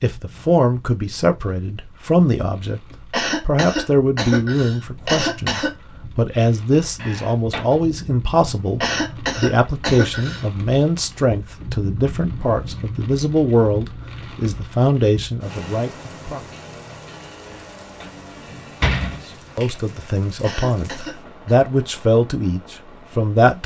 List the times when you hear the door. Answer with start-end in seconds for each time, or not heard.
7.0-7.8, 17.4-19.2.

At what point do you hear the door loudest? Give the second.
19 s.